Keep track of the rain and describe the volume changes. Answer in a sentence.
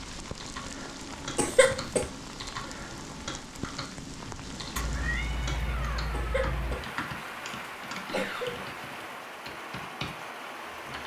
The loudness of the rain stays about the same.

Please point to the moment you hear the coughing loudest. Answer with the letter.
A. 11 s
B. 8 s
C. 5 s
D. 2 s
D.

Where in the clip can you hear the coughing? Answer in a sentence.
The coughing can be heard from 1.4 to 2.0 s and from 6.1 to 8.7 s.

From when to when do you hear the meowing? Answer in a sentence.
You can hear the meowing from 4.8 to 6.8 s.